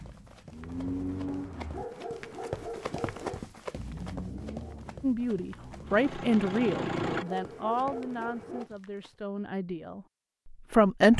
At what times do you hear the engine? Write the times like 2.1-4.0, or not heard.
0.0-1.9, 3.7-7.2.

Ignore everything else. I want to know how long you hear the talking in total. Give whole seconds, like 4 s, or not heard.
6 s.